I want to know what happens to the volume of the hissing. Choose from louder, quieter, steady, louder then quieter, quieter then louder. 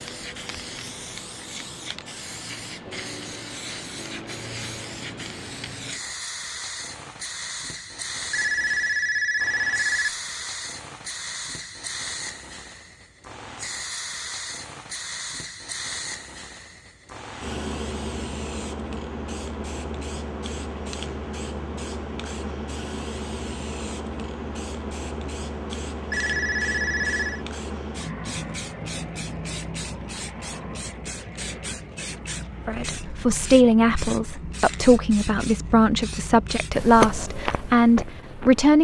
steady.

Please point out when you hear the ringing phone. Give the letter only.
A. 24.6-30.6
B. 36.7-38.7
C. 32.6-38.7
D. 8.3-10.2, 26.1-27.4
D.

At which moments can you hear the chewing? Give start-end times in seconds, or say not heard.
36.7-38.7.